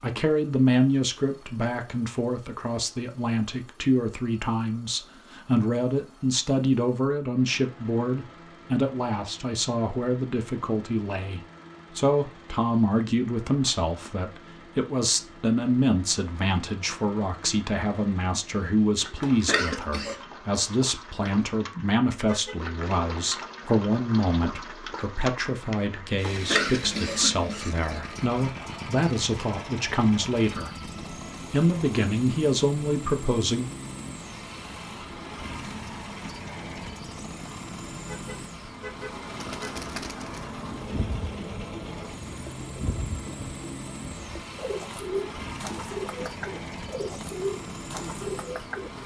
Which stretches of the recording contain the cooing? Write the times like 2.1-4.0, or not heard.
39.4-49.0.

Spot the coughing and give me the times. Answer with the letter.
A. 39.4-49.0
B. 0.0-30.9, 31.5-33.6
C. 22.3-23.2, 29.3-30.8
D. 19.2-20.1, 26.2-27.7
D.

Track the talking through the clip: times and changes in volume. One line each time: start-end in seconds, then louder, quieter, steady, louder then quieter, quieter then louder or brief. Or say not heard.
0.0-30.9 steady
31.5-33.6 brief.